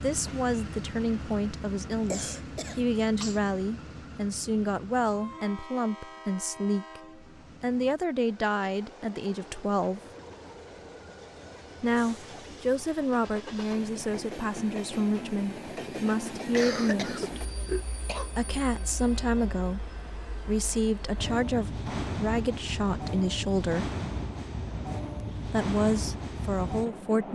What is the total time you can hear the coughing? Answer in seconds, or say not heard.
3 s.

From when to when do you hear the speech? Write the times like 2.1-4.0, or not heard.
0.0-7.0, 7.6-10.0, 11.8-17.4, 18.4-23.9, 25.4-27.3.